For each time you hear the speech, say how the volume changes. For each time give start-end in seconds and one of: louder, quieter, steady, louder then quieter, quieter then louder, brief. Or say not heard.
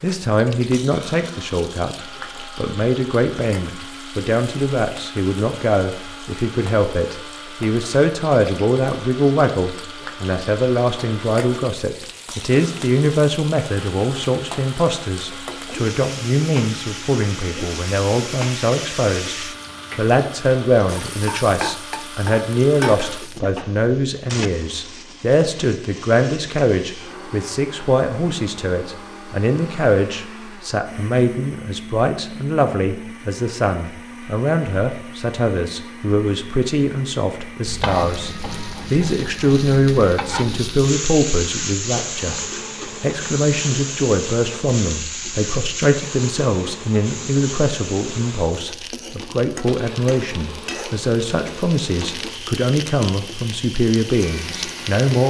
0.0-42.4 steady
43.0-55.2 steady.